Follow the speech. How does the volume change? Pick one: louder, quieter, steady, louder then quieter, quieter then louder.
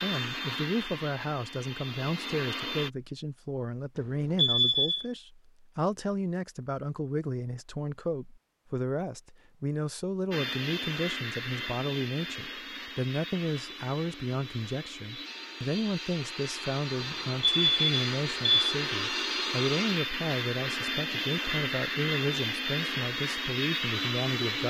steady.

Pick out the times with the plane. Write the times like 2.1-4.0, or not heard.
0.0-2.9, 10.3-24.6.